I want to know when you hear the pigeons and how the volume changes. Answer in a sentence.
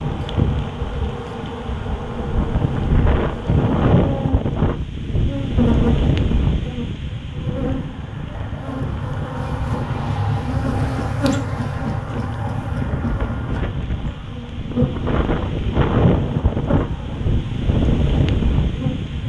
The pigeons can't be heard in this clip.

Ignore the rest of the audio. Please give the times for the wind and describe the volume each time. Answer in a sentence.
The wind can be heard from 0.0 to 19.2 s, getting quieter then louder.